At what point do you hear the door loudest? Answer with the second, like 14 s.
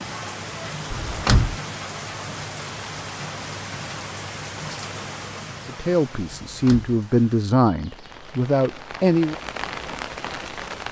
1 s.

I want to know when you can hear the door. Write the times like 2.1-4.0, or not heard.
0.9-1.6, 6.5-7.0.